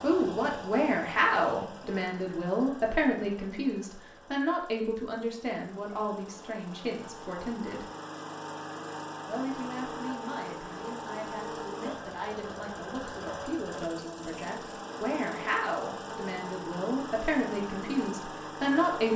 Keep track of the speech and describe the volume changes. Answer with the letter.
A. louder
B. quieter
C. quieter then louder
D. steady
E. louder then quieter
C.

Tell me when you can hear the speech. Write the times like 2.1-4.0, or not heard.
0.0-7.8, 9.2-19.1.